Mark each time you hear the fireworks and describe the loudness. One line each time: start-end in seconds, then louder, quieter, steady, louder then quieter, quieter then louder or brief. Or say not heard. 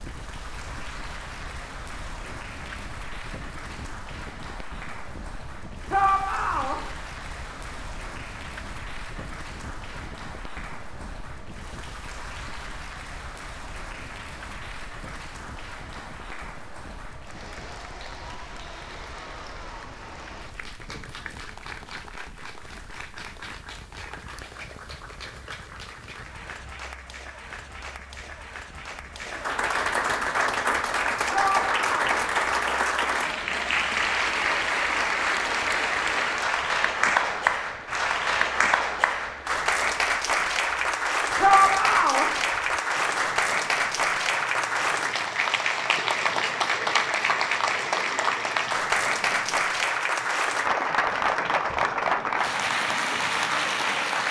not heard.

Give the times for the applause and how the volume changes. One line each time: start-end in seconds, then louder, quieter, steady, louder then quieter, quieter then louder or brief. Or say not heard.
0.0-54.2 louder.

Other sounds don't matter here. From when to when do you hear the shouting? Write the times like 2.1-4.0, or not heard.
5.9-6.8, 31.3-32.2, 41.4-42.3.